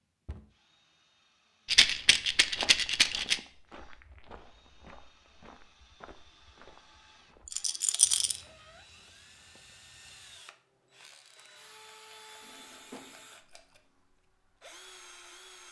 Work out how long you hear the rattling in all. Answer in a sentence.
The rattling can be heard for 5 seconds in total.